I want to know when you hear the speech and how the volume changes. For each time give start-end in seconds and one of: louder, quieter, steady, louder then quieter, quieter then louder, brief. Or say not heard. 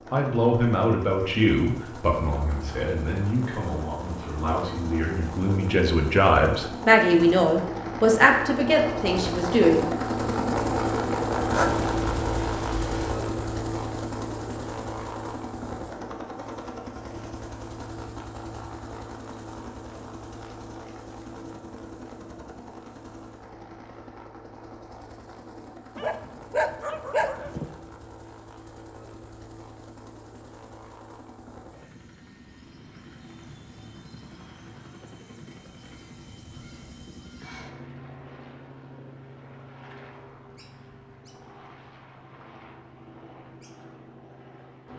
0.1-9.8 quieter then louder.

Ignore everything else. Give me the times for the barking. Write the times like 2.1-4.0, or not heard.
11.5-13.2, 25.9-27.7.